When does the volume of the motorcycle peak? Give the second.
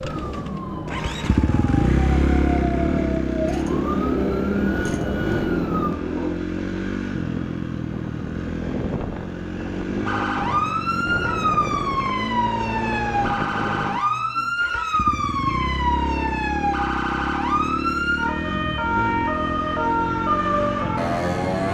2 s.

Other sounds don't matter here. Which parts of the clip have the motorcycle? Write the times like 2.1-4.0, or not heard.
0.0-21.6.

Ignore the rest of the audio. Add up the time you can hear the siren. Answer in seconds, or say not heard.
18 s.